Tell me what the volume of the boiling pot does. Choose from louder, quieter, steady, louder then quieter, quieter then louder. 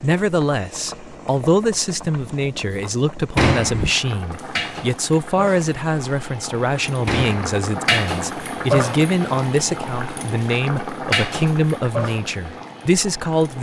louder.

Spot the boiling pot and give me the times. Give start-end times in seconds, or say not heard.
0.0-13.5.